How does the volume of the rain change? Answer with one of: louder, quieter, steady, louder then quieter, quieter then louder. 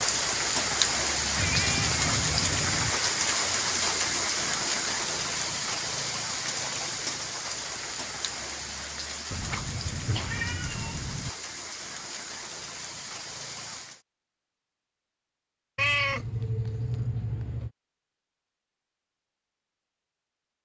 quieter.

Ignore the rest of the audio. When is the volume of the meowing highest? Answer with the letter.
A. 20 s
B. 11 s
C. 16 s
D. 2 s
C.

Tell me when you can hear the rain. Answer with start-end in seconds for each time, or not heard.
0.0-14.0.